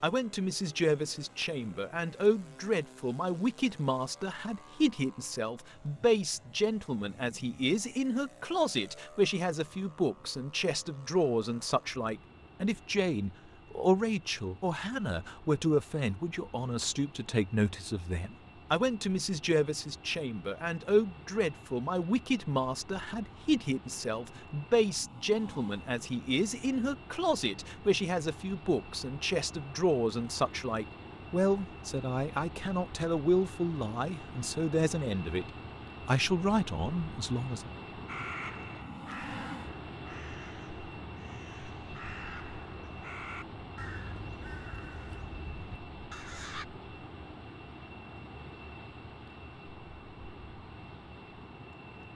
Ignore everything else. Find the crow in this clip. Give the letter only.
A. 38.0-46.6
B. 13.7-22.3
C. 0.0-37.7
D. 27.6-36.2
A.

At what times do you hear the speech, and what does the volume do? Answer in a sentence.
The speech can be heard from 0.0 to 37.7 s, at a steady volume.